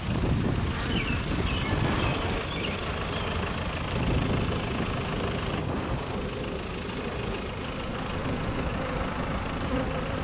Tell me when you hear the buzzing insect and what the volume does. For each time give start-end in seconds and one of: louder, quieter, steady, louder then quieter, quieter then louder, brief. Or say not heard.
0.0-10.1 steady.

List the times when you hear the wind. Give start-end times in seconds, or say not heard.
0.0-10.1.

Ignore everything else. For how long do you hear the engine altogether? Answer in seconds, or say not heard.
10 s.